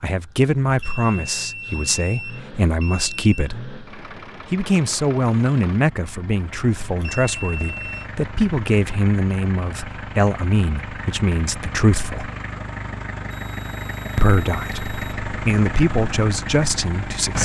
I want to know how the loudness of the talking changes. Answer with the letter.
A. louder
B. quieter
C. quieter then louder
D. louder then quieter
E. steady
E.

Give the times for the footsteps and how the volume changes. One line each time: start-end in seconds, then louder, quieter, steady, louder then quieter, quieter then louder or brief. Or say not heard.
not heard.